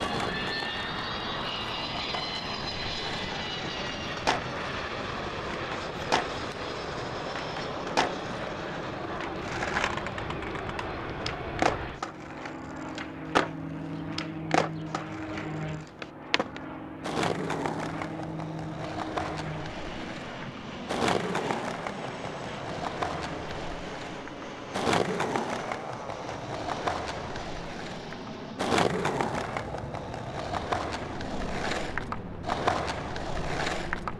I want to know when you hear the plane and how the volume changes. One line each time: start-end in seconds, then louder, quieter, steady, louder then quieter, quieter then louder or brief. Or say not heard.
0.0-34.1 quieter.